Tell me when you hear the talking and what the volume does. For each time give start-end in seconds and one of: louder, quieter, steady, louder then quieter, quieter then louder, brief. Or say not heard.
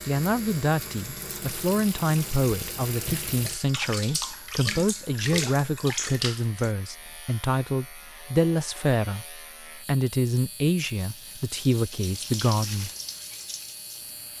0.1-12.9 steady.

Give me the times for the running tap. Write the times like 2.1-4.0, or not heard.
0.0-6.8, 10.9-14.3.